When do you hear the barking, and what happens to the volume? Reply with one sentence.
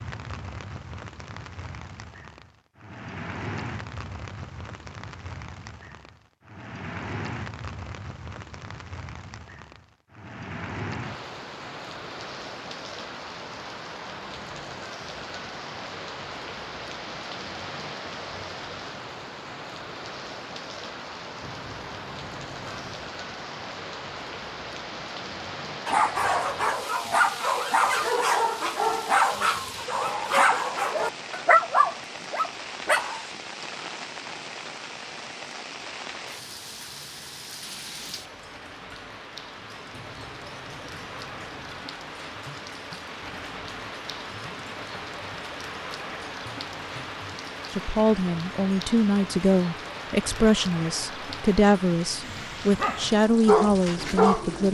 You can hear the barking from 25.9 to 33.2 s, at a steady volume; and briefly from 52.2 to 54.6 s.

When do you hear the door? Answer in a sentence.
The door can be heard from 21.4 to 23.1 s and from 39.9 to 41.9 s.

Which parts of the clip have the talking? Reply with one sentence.
You can hear the talking from 47.7 to 54.6 s.